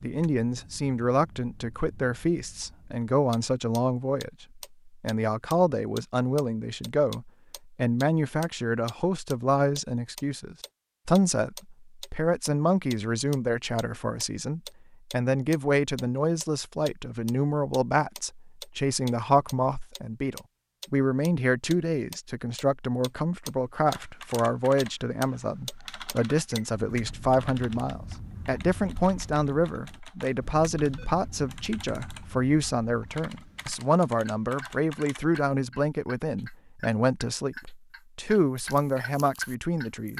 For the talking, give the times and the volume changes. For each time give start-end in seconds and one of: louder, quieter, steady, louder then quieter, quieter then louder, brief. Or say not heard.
0.0-40.1 steady.